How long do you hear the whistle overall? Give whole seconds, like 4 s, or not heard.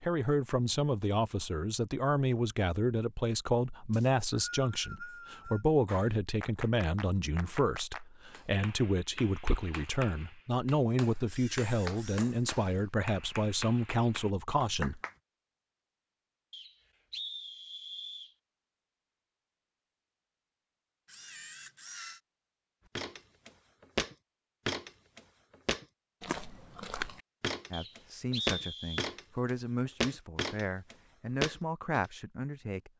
5 s.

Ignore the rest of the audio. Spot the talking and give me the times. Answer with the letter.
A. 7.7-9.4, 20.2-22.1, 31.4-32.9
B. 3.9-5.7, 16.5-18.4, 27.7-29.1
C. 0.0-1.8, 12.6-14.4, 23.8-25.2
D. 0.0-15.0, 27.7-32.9
D.